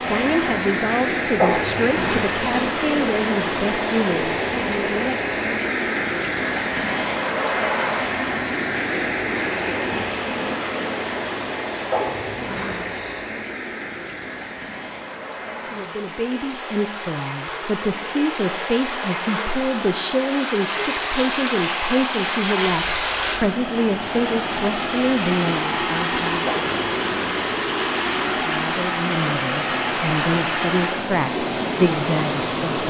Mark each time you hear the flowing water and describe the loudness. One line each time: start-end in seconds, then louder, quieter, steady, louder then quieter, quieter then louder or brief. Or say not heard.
0.0-32.8 quieter then louder.